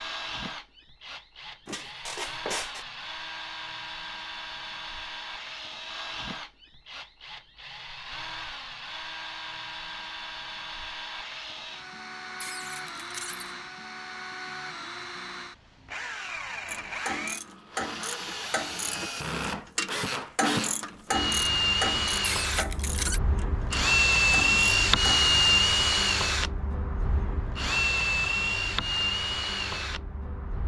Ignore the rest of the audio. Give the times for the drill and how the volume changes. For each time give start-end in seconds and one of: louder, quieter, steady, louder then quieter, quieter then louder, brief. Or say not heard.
0.0-30.6 louder.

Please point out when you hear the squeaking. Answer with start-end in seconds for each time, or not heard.
1.6-2.9, 12.4-13.6, 22.2-23.2.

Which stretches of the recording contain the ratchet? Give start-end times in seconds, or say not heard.
16.6-25.2.